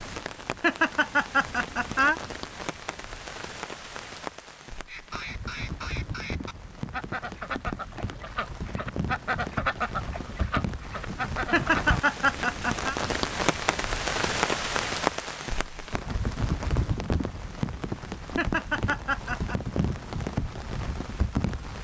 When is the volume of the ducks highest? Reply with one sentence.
The loudest moment of the ducks is at 10 seconds.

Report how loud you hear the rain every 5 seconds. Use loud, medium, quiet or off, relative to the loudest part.
medium, medium, loud, loud, loud.